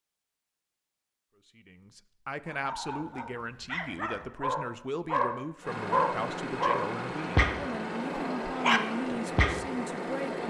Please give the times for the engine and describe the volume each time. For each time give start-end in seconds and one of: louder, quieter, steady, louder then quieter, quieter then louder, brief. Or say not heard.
5.6-10.4 steady.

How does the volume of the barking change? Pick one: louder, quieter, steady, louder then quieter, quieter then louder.
louder.